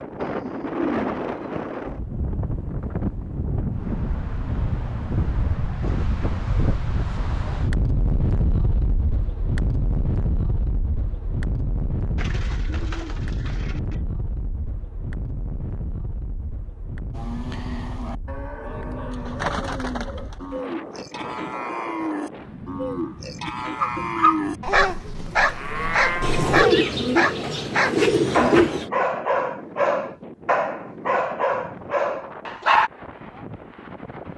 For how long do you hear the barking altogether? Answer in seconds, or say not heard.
9 s.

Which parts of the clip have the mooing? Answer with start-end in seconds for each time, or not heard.
17.1-26.6.